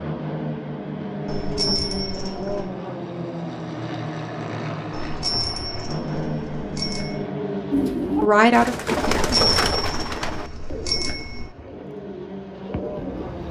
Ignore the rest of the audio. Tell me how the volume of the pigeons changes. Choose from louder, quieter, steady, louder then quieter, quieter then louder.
quieter then louder.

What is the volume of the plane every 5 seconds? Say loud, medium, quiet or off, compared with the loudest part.
loud, loud, medium.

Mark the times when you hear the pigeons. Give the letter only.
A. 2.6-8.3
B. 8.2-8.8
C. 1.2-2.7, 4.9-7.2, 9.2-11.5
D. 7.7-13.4
D.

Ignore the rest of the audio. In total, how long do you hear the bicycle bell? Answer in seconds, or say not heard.
6 s.